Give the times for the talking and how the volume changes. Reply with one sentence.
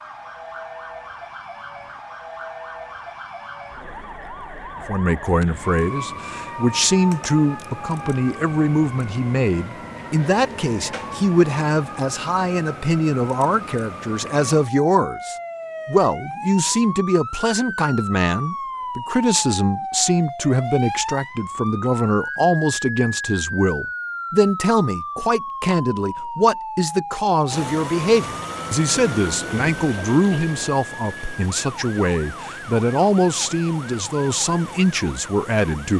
You can hear the talking from 4.8 to 35.9 s, at a steady volume.